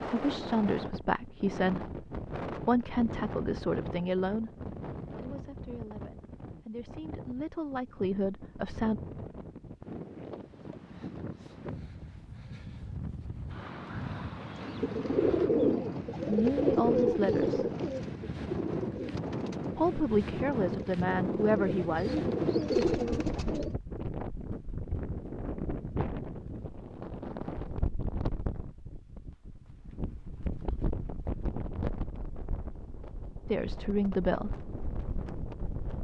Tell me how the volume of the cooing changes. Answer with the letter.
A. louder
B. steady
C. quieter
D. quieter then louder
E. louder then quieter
D.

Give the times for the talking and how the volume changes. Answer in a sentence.
The talking can be heard from 0.1 to 9.0 s, getting quieter then louder; briefly from 16.2 to 17.6 s; briefly from 19.8 to 22.2 s; and briefly from 33.5 to 34.6 s.